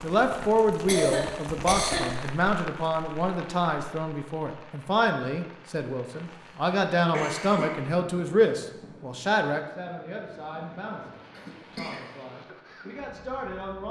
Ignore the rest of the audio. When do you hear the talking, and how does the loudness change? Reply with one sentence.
You can hear the talking from 0.0 to 13.8 s, getting quieter.